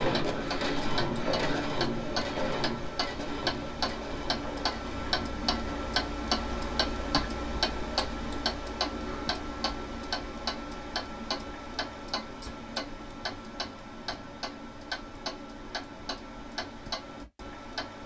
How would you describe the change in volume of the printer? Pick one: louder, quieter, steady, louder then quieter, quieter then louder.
quieter.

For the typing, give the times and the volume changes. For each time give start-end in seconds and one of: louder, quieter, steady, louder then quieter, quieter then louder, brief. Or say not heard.
not heard.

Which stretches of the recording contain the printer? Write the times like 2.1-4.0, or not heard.
0.0-8.6.